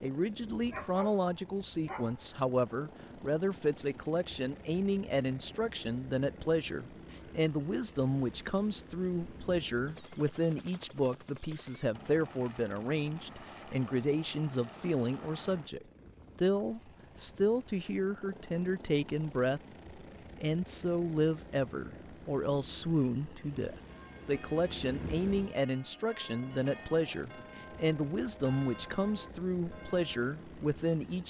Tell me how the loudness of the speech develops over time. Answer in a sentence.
The volume of the speech stays about the same.